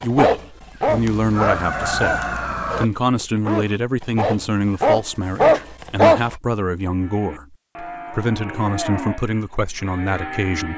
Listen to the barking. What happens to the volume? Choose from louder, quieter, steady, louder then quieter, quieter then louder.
quieter then louder.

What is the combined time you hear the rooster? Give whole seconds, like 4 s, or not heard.
2 s.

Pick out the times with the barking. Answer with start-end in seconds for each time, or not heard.
0.0-6.3.